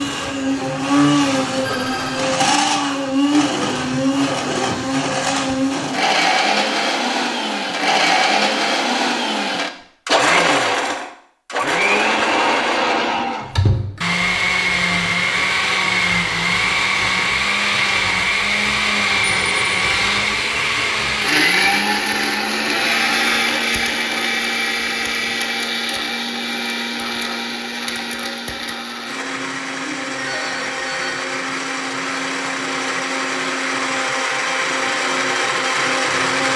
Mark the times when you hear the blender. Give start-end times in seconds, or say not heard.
0.0-36.5.